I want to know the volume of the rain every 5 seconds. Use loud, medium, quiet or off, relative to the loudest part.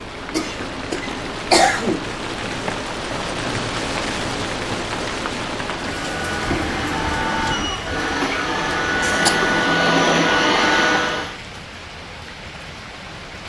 loud, loud, medium.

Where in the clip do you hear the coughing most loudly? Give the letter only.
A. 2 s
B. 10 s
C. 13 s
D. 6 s
A.